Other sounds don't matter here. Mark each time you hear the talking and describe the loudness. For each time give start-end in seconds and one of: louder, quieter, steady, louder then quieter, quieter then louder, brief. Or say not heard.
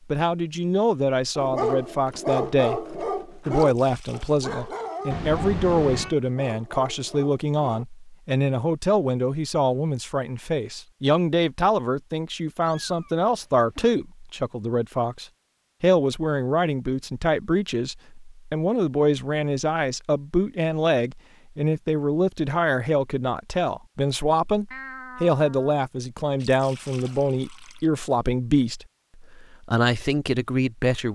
0.1-31.1 steady.